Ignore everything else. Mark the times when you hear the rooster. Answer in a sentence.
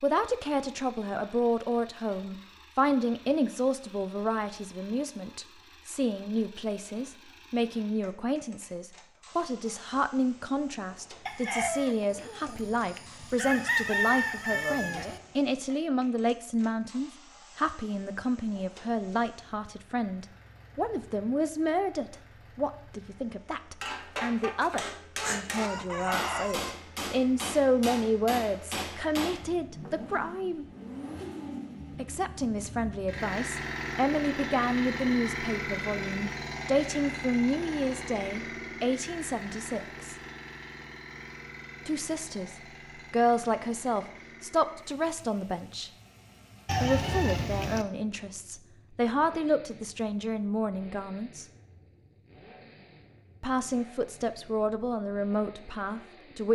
You can hear the rooster from 11.2 to 15.2 s, from 25.2 to 26.8 s and from 46.6 to 47.9 s.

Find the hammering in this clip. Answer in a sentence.
The hammering can be heard from 23.8 to 29.9 s.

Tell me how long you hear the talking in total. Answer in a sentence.
The talking can be heard for 51 seconds in total.